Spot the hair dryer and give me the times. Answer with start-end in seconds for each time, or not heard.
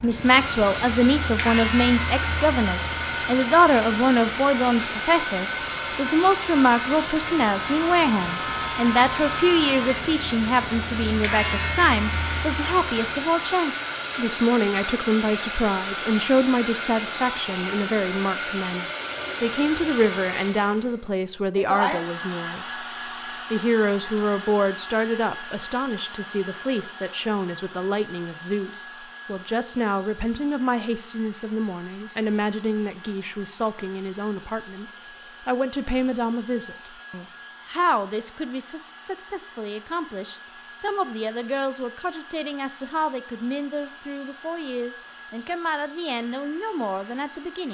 0.0-47.6.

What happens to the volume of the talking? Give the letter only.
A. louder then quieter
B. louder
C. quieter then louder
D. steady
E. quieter
E.